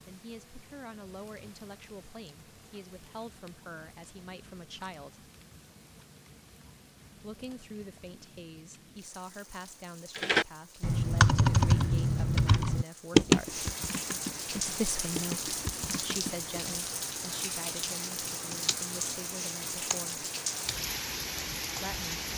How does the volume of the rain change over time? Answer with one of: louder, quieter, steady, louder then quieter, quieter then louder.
louder.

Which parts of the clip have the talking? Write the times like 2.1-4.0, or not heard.
0.1-5.3, 7.2-13.7, 14.5-20.2, 21.8-22.2.